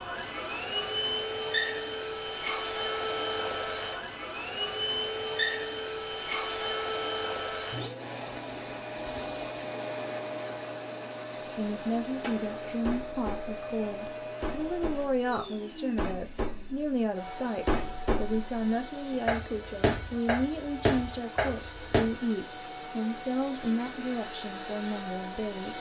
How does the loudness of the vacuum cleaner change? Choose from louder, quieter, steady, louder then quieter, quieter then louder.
quieter.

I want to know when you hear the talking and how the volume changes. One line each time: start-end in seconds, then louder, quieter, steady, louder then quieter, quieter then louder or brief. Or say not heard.
11.6-25.7 steady.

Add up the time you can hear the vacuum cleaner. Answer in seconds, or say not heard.
26 s.